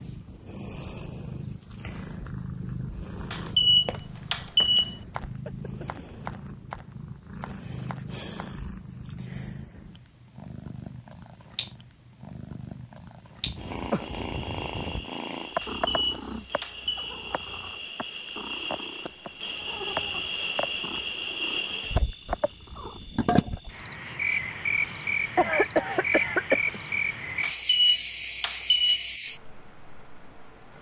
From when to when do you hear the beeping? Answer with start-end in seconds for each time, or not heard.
3.3-5.0, 15.6-16.9, 27.4-29.1.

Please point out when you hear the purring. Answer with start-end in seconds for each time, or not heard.
0.0-23.1.